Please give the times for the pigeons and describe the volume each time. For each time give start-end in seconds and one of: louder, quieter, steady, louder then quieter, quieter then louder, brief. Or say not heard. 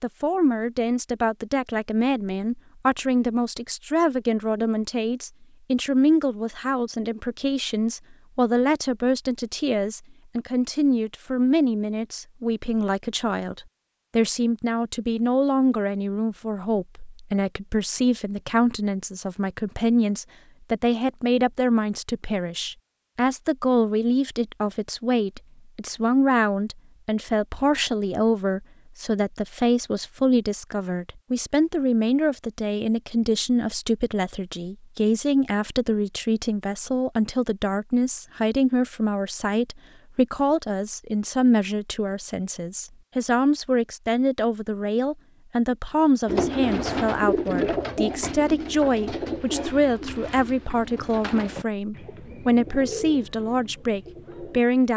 46.2-54.6 quieter.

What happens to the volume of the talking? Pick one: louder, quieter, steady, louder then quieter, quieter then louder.
steady.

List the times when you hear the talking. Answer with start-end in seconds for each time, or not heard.
0.0-54.9.